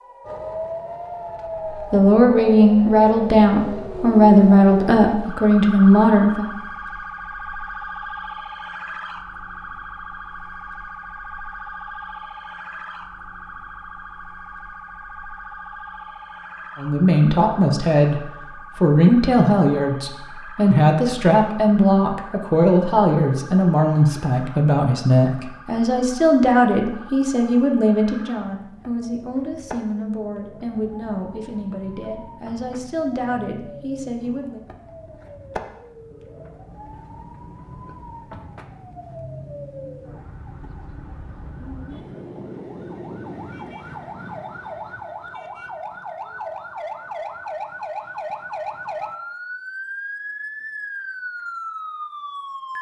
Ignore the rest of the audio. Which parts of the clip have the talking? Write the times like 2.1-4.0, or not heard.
1.9-6.5, 16.8-34.6.